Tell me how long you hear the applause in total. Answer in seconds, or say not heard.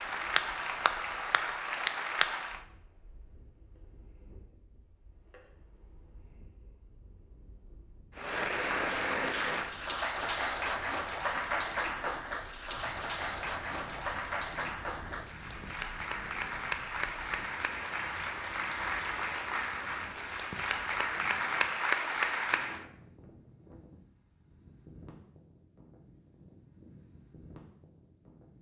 17 s.